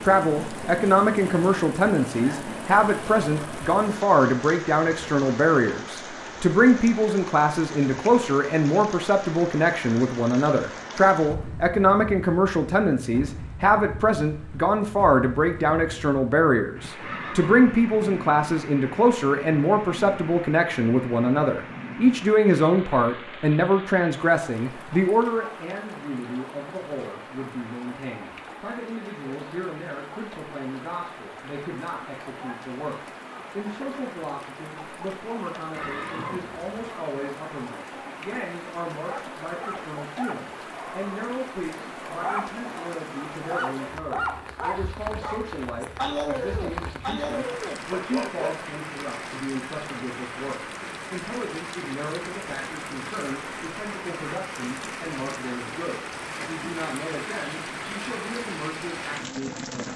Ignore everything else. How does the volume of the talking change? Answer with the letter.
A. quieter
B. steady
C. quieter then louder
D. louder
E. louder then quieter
A.